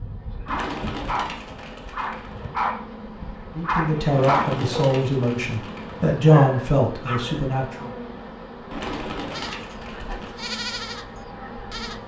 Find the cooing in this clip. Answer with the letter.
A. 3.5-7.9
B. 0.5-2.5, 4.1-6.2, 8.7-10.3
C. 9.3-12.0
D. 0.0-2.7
B.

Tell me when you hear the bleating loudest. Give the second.
11 s.